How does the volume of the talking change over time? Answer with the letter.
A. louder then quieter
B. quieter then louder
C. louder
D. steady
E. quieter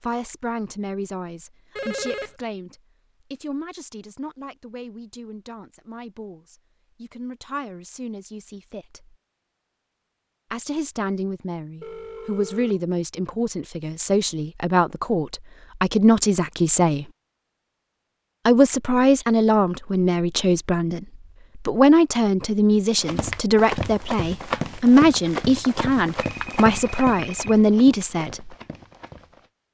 C.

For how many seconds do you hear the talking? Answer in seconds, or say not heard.
26 s.